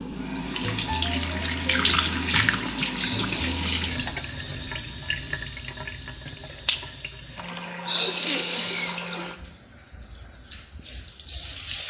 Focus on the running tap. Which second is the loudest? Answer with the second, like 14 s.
2 s.